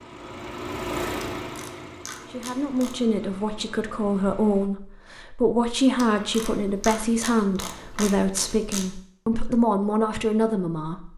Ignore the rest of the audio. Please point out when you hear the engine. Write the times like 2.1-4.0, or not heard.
0.0-4.7.